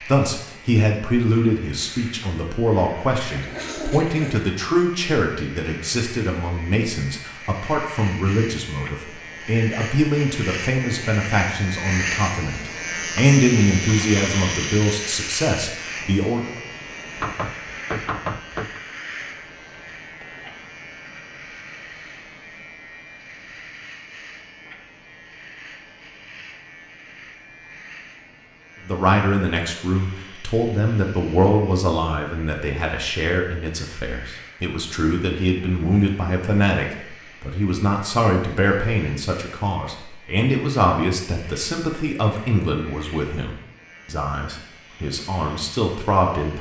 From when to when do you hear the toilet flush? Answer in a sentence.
The toilet flush can be heard from 3.3 to 4.5 s.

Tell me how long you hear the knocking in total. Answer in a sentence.
You can hear the knocking for 2 seconds altogether.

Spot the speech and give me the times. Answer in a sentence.
The speech can be heard from 0.0 to 16.5 s and from 28.9 to 46.5 s.